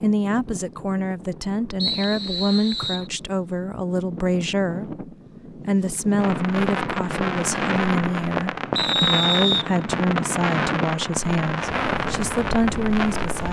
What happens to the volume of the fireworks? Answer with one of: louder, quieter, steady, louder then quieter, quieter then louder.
steady.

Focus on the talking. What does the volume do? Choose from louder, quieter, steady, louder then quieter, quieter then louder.
steady.